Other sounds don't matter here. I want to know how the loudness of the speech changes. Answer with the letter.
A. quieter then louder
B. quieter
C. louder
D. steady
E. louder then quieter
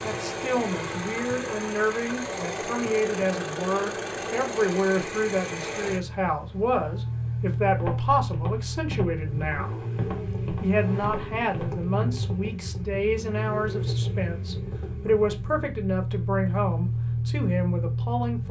D.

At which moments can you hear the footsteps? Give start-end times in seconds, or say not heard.
7.8-12.2.